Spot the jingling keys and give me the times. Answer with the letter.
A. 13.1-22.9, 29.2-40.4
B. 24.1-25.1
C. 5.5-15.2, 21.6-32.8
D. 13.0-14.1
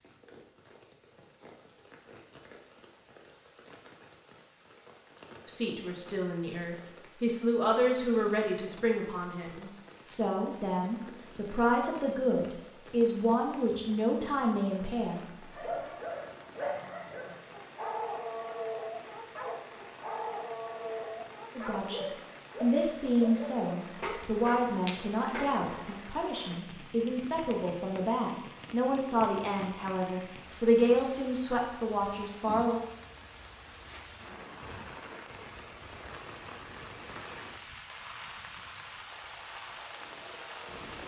B.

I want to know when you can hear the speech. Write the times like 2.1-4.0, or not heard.
5.5-15.2, 21.6-32.8.